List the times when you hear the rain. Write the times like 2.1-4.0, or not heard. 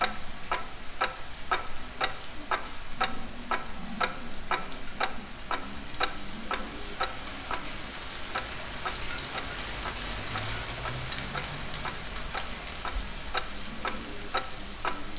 0.0-15.1.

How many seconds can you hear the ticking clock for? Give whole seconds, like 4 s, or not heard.
15 s.